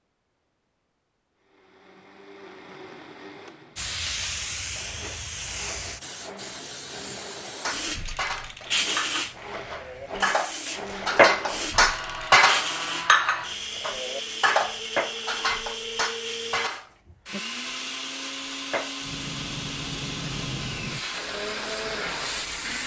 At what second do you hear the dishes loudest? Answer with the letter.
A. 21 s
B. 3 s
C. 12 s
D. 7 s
C.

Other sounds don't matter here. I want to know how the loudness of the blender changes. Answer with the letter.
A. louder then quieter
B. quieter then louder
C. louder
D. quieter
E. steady
C.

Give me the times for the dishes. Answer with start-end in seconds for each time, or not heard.
7.6-16.9.